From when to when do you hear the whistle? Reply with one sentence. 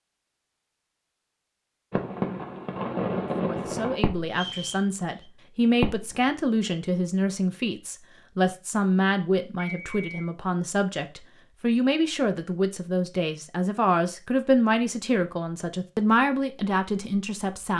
The whistle can be heard from 4.3 to 5.2 s and from 9.6 to 10.2 s.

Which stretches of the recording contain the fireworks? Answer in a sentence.
You can hear the fireworks from 1.9 to 4.7 s and from 5.8 to 6.5 s.